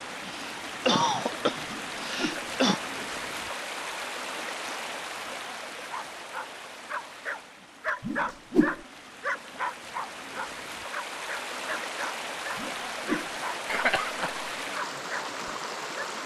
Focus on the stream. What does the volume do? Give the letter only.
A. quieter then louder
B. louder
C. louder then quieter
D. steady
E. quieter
A.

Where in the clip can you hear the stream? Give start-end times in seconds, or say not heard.
0.0-16.2.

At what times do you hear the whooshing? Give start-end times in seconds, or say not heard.
1.6-2.4, 8.0-8.8, 12.6-13.3.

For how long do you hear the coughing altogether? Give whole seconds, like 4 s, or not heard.
3 s.